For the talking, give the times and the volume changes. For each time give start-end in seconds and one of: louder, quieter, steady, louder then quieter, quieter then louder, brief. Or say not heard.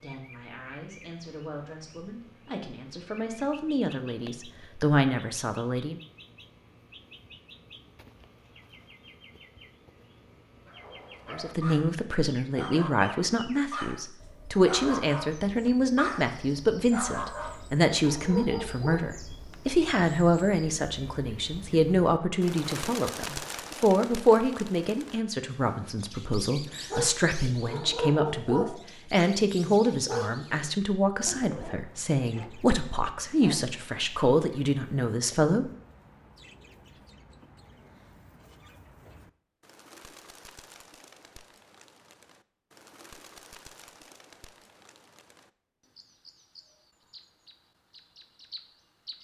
0.0-6.0 louder
11.3-35.7 steady.